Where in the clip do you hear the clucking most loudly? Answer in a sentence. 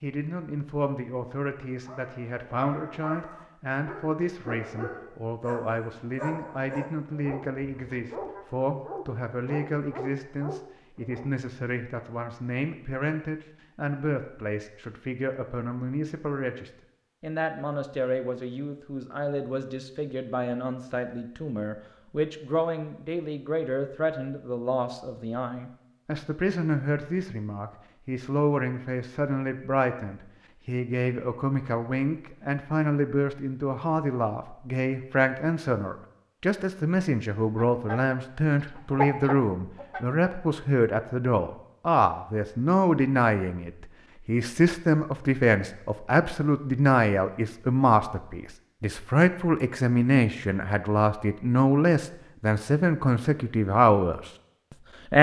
The volume of the clucking peaks at 39 seconds.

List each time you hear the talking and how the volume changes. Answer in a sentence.
You can hear the talking from 0.0 to 54.3 s, getting louder.